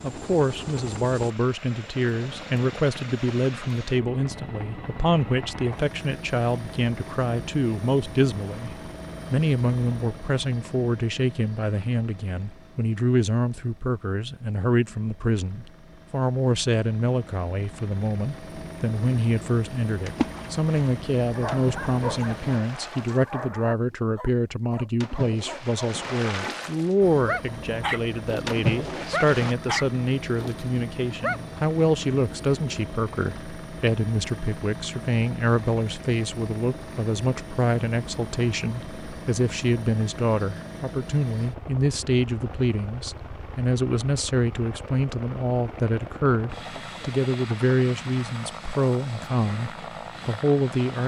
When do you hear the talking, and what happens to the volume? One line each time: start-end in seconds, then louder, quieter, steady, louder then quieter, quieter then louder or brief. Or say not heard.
0.0-51.0 steady.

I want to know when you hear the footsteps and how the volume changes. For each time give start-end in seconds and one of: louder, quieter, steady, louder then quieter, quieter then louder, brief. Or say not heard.
not heard.